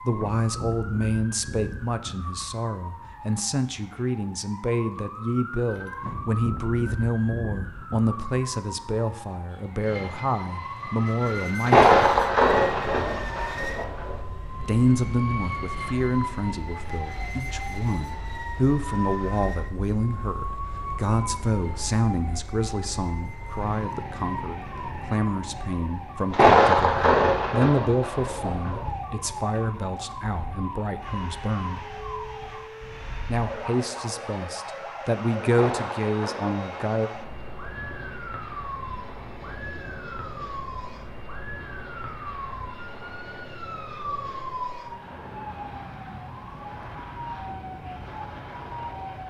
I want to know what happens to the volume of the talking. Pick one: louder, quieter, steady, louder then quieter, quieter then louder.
steady.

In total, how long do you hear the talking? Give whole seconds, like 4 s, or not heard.
33 s.